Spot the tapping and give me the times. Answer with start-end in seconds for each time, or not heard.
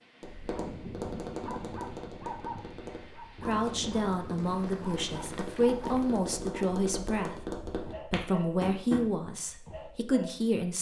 0.2-9.1.